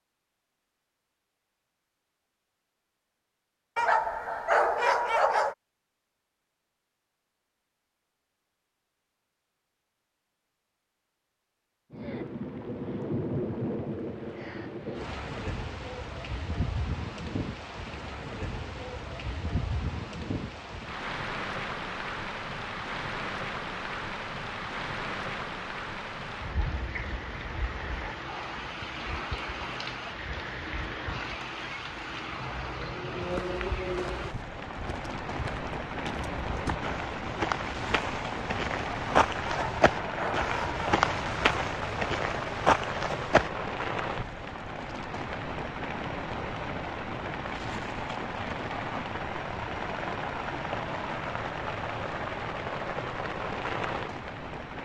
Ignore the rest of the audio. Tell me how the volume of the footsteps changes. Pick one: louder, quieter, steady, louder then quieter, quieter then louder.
louder.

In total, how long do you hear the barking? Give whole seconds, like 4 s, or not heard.
3 s.